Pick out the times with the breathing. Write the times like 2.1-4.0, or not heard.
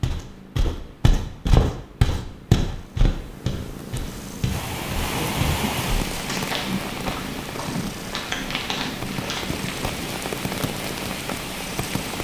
not heard.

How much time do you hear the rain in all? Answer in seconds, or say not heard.
8 s.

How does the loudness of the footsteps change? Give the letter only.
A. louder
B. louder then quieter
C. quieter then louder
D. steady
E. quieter
E.